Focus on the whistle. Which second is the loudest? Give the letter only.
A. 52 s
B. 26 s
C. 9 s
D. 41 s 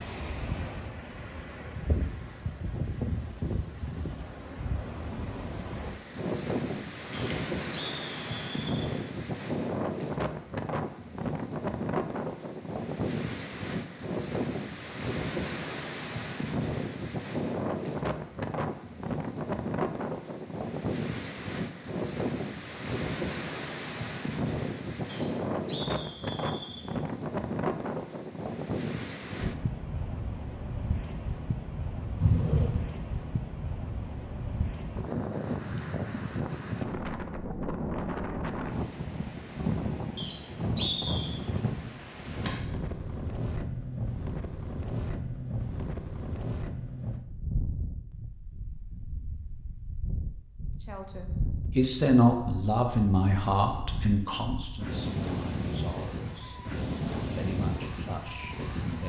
D.